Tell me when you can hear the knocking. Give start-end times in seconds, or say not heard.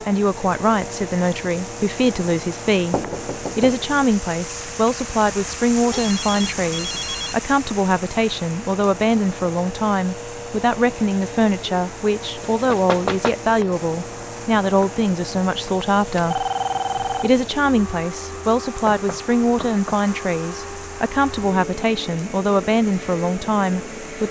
2.9-3.9, 12.5-13.3, 18.9-20.1.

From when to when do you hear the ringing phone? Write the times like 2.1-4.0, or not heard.
5.9-7.4, 16.1-17.3.